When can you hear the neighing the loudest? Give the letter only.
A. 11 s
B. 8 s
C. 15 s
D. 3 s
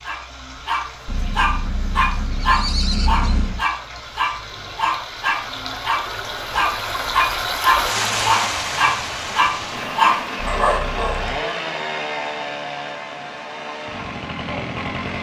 D.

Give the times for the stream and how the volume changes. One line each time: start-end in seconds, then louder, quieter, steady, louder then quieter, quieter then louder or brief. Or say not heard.
0.0-15.1 louder then quieter.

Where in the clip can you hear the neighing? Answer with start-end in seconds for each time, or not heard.
1.1-3.6, 10.4-11.3.